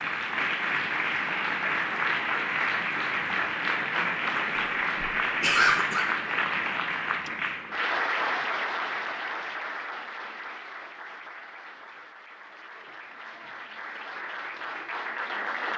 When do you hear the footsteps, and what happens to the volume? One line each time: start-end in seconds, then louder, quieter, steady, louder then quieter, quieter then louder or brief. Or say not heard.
not heard.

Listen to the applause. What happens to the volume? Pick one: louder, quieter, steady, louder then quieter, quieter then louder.
quieter.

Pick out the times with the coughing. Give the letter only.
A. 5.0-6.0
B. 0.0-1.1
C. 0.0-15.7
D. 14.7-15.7
A.